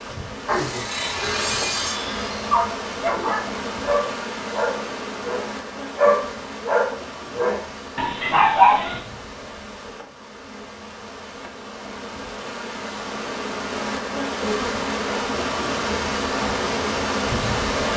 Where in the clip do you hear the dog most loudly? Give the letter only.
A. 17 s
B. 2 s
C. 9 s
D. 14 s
C.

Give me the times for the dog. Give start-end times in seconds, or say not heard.
0.5-9.0.